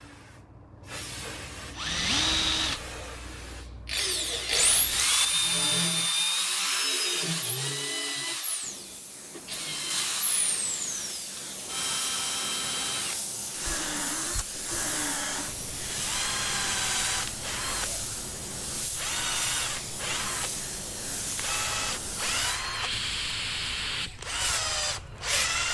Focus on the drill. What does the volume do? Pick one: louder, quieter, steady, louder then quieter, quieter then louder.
quieter.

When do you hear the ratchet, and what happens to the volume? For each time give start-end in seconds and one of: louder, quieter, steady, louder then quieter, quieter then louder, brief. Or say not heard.
not heard.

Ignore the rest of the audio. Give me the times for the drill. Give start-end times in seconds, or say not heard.
1.7-25.6.